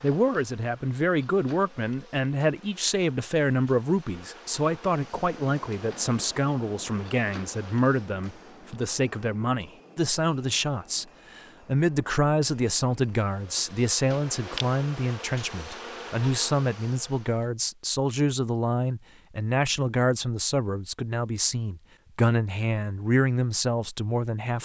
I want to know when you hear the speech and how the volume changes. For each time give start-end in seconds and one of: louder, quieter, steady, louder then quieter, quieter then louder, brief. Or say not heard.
0.0-24.6 steady.